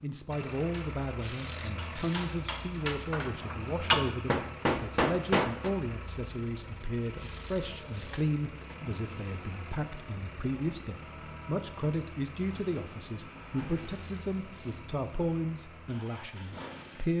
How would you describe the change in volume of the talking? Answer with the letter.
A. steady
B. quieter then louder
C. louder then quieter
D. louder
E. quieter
A.